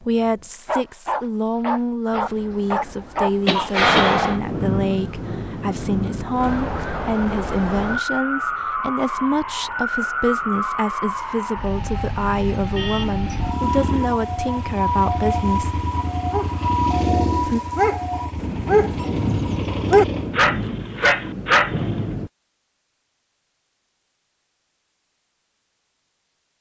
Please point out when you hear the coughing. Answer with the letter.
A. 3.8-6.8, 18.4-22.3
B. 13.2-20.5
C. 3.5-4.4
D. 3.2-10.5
C.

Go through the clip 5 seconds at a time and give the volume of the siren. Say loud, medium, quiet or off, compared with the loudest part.
quiet, loud, loud, loud, off, off.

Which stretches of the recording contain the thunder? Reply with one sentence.
The thunder can be heard from 3.8 to 6.8 s and from 18.4 to 22.3 s.